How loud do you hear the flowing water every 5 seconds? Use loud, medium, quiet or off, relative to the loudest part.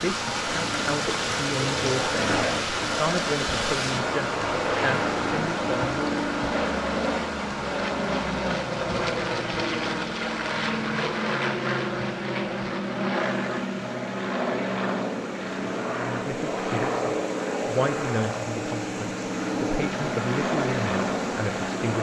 loud, loud, quiet, medium, medium.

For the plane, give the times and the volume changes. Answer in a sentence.
The plane can be heard from 0.0 to 21.9 s, at a steady volume.